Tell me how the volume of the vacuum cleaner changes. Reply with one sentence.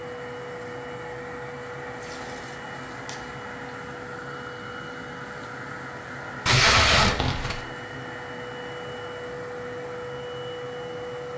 The loudness of the vacuum cleaner stays about the same.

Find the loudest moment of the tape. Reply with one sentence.
The loudest moment of the tape is at 7 seconds.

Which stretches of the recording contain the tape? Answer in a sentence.
You can hear the tape from 2.0 to 3.1 s and from 6.5 to 7.6 s.